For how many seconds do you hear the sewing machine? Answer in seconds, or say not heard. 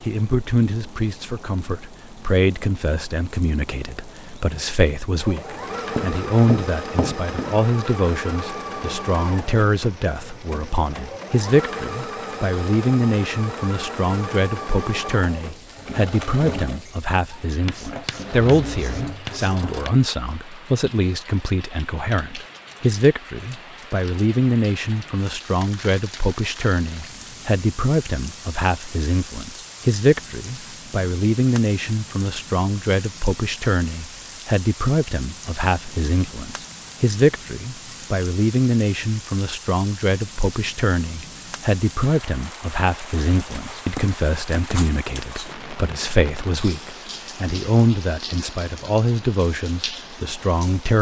15 s.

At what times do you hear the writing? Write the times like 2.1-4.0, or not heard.
6.0-7.6, 17.6-19.9, 43.2-44.9.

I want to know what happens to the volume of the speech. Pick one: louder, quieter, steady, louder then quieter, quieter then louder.
steady.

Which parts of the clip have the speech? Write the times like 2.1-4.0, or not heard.
0.0-50.9.